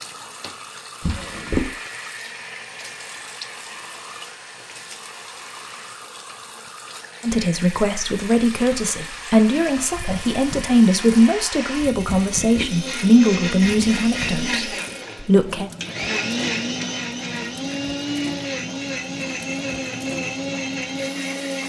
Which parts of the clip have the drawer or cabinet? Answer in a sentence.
The drawer or cabinet can be heard from 1.0 to 1.8 s and from 12.1 to 12.8 s.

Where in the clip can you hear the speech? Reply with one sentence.
You can hear the speech from 7.2 to 15.7 s.